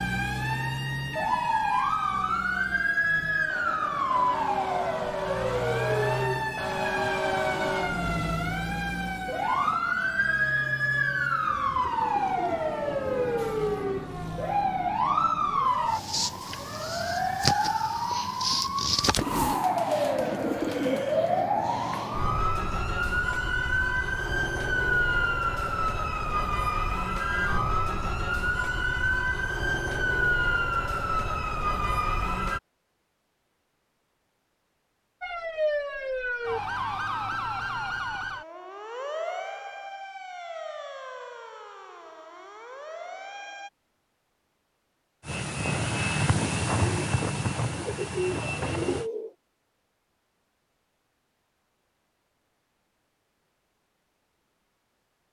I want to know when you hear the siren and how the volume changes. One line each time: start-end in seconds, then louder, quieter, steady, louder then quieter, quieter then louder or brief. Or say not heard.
0.0-32.6 steady
35.2-43.7 quieter.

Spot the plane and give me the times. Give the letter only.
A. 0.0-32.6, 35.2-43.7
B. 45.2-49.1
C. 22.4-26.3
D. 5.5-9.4
B.